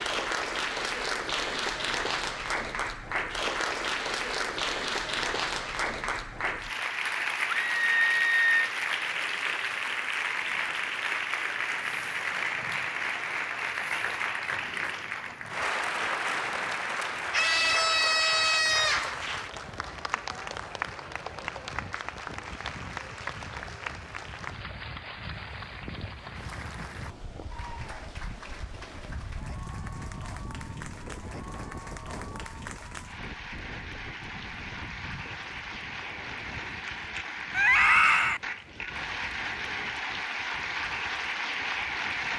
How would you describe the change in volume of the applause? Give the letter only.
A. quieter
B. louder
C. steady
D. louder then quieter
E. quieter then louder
E.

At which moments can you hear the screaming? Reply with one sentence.
You can hear the screaming from 7.7 to 8.7 s, from 17.3 to 19.1 s and from 37.5 to 38.4 s.